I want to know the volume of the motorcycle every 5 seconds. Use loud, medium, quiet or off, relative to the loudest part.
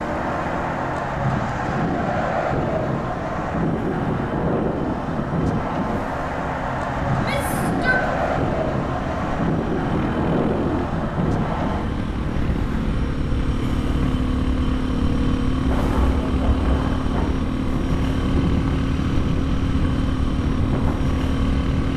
medium, medium, loud, loud, loud.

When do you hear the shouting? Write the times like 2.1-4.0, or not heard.
7.1-8.1.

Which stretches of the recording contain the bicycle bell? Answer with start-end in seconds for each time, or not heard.
not heard.